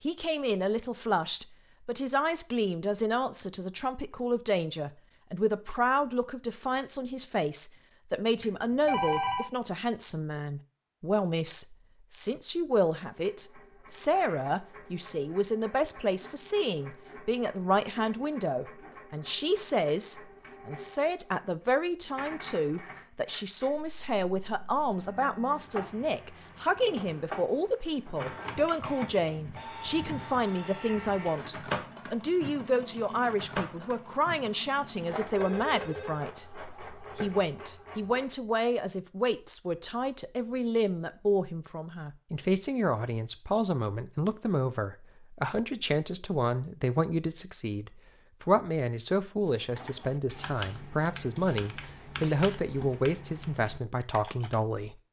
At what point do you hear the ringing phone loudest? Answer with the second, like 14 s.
9 s.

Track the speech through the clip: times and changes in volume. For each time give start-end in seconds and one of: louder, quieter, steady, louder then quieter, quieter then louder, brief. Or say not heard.
0.0-55.0 steady.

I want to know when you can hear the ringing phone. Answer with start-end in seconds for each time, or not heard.
8.4-9.5, 35.4-36.3.